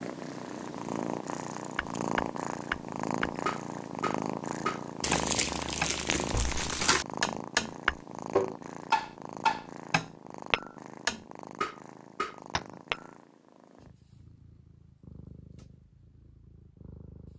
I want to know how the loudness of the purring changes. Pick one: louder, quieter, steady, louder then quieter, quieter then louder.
quieter.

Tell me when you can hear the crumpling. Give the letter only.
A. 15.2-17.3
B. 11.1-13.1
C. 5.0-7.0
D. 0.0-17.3
C.